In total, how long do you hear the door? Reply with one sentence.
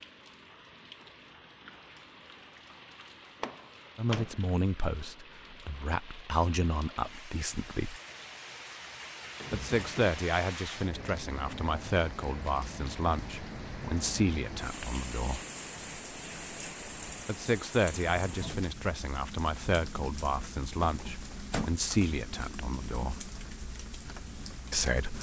You can hear the door for 3 seconds altogether.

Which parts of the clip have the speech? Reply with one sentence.
You can hear the speech from 4.0 to 8.0 s, from 9.5 to 15.4 s, from 17.2 to 23.2 s and from 24.7 to 25.1 s.